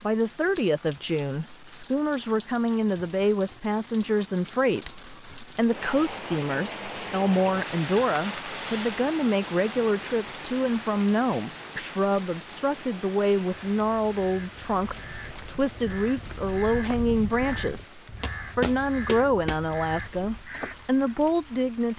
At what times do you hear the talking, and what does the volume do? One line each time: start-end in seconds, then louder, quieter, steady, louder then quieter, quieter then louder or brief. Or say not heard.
0.0-21.9 steady.